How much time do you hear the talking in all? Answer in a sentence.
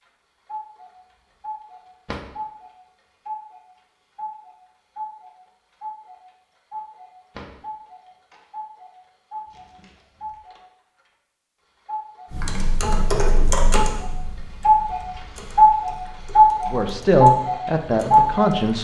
The talking can be heard for 2 seconds in total.